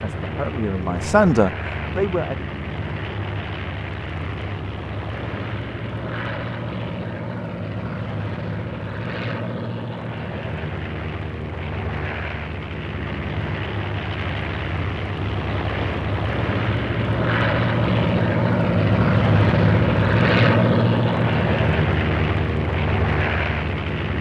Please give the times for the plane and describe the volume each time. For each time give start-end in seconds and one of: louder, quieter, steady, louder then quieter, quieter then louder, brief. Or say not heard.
0.0-24.1 louder.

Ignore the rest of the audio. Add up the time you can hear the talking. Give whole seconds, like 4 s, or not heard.
2 s.